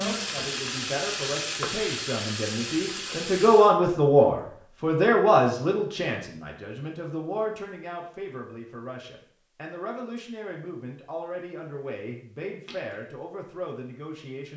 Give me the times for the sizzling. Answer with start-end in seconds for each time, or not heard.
0.0-3.8.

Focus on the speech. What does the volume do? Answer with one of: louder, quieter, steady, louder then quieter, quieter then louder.
louder then quieter.